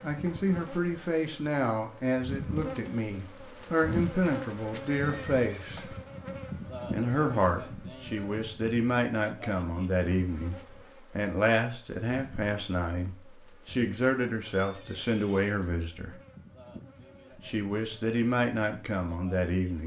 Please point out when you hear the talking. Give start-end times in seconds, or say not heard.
0.0-6.0, 6.9-16.1, 17.4-19.8.